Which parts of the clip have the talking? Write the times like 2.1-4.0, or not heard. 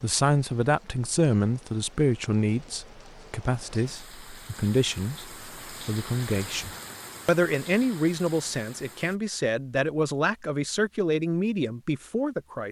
0.0-12.6.